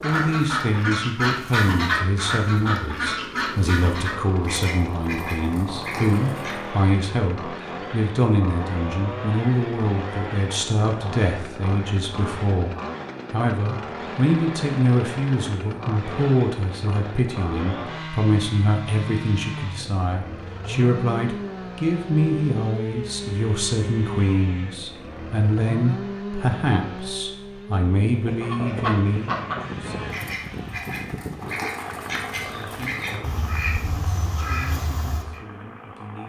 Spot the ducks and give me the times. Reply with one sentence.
The ducks can be heard from 0.0 to 6.8 s and from 28.1 to 35.4 s.